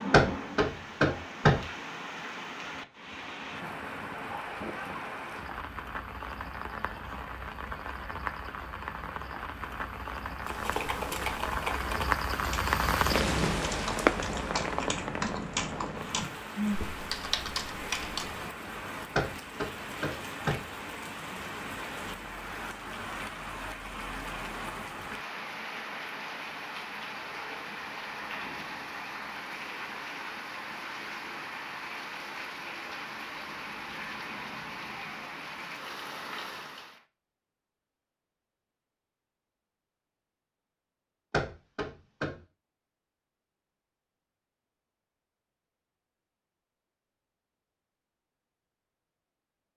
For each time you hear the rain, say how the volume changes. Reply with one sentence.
The rain can be heard from 0.0 to 37.0 s, getting louder then quieter.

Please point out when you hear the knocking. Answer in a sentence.
The knocking can be heard from 0.1 to 1.6 s, from 19.1 to 20.6 s and from 41.3 to 42.4 s.